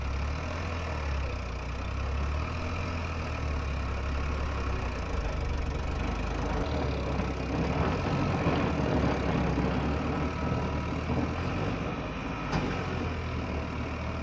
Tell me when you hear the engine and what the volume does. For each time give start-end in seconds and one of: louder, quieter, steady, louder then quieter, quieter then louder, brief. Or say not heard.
0.0-14.1 steady.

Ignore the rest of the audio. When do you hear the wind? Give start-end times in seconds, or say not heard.
0.0-14.1.